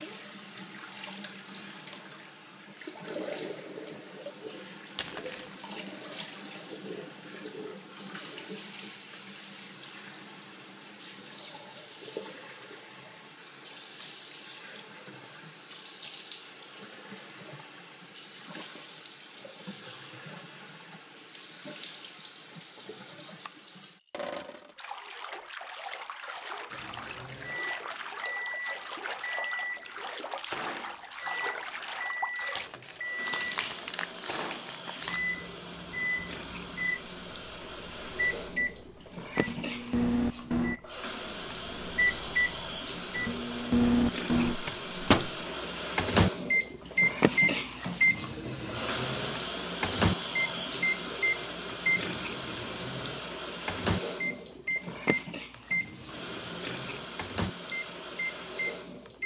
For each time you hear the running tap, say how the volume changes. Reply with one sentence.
You can hear the running tap from 0.0 to 59.2 s, getting louder.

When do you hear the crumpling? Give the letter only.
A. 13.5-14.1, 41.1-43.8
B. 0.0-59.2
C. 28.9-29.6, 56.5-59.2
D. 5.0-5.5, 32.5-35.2
D.